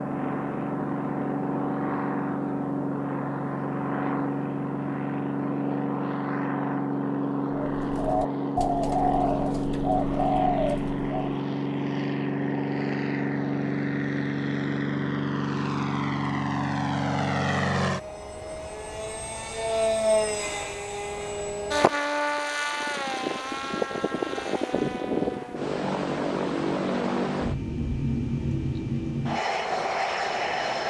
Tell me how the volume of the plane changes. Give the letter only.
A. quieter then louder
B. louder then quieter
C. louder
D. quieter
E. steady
E.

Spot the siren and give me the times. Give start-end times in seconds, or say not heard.
not heard.